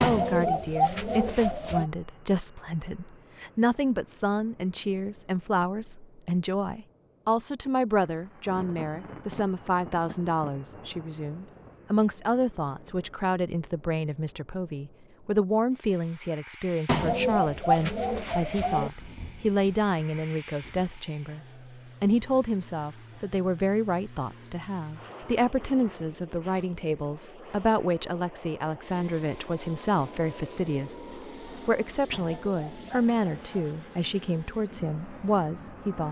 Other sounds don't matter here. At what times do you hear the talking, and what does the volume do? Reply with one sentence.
The talking can be heard from 0.0 to 36.0 s, at a steady volume.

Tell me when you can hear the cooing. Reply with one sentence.
You can hear the cooing from 0.0 to 1.9 s, from 16.9 to 18.9 s and from 32.1 to 33.6 s.